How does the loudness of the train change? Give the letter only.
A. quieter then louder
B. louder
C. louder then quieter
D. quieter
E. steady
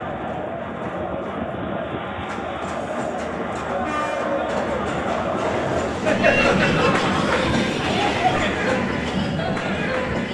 B.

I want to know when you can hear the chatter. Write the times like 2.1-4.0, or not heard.
0.0-10.3.